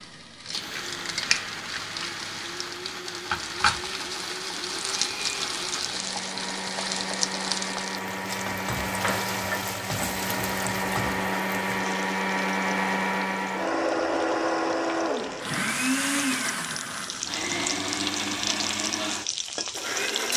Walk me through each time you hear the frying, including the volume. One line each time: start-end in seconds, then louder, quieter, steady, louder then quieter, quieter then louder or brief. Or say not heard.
0.0-20.3 quieter then louder.